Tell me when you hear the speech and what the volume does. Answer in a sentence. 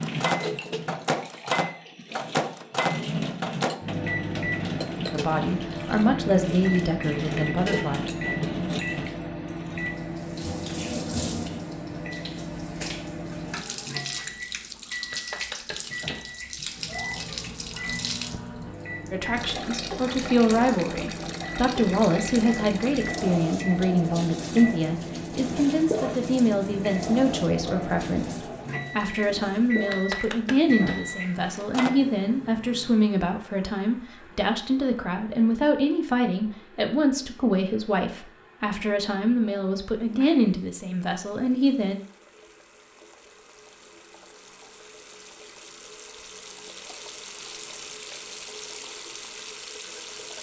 The speech can be heard briefly from 5.1 to 8.0 s; and from 19.1 to 42.0 s, at a steady volume.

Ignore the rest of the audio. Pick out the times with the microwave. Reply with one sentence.
The microwave can be heard from 0.0 to 32.0 s.